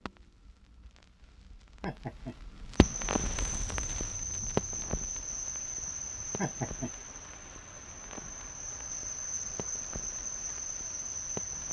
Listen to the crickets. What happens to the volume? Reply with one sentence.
The volume of the crickets goes down, then up.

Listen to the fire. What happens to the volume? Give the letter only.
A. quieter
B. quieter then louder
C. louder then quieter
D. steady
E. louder
C.